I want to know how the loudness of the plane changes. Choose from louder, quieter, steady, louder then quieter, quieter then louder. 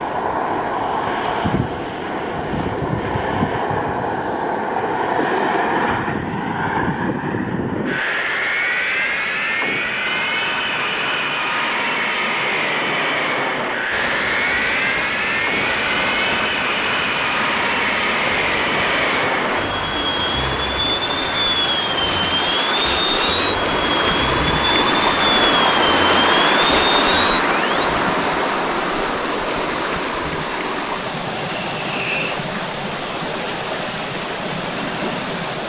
steady.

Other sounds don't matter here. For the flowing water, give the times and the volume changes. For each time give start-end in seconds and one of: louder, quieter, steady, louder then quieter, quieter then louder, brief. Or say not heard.
13.9-35.6 louder then quieter.